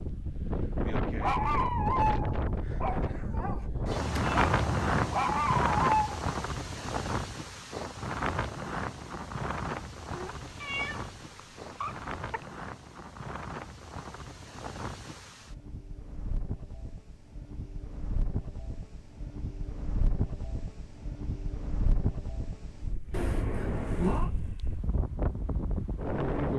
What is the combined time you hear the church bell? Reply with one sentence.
The church bell can't be heard in this clip.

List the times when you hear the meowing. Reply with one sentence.
The meowing can be heard from 4.0 to 5.2 s, from 10.1 to 12.4 s and from 23.1 to 24.3 s.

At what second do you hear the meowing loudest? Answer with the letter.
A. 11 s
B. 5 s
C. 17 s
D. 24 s
D.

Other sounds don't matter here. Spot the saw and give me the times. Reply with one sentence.
The saw can't be heard in this clip.